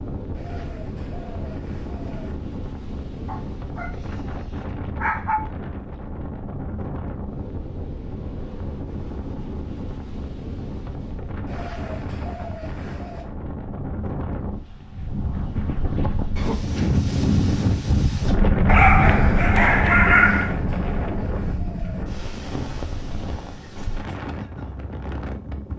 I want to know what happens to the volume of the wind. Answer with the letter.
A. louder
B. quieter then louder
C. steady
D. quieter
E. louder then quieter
E.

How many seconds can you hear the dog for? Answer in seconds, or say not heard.
4 s.